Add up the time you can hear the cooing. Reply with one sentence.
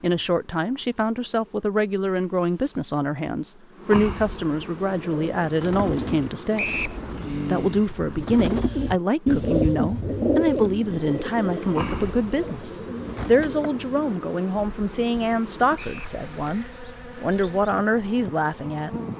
You can hear the cooing for 10 seconds altogether.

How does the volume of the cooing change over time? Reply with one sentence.
The volume of the cooing goes up, then down.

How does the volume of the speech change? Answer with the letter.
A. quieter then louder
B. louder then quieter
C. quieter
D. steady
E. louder
D.